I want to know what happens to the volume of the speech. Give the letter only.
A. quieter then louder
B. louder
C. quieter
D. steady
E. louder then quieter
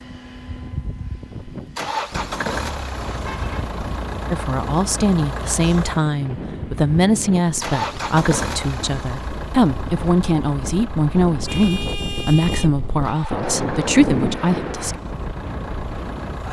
D.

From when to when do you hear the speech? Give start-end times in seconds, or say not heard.
4.3-14.9.